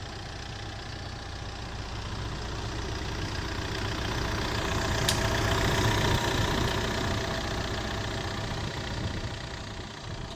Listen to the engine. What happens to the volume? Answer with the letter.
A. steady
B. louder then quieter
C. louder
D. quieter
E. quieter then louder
B.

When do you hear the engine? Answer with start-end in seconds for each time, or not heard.
0.0-10.3.